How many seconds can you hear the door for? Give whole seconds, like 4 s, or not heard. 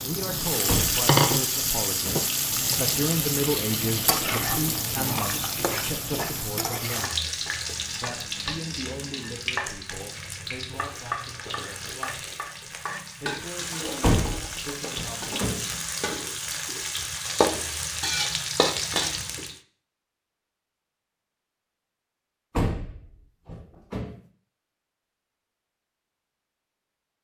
5 s.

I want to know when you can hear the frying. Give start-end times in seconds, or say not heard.
0.0-19.6.